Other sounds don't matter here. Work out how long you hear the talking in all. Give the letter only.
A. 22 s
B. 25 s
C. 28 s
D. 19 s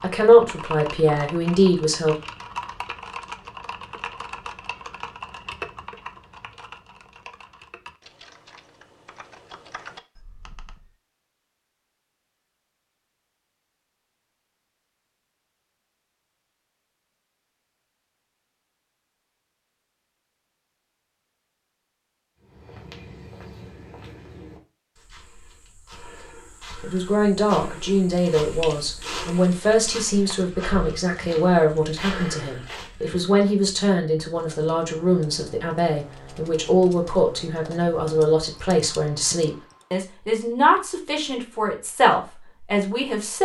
D.